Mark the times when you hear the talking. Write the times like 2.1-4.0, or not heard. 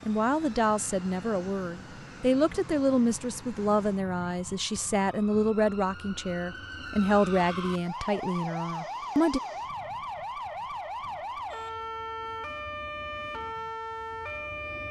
0.0-9.4.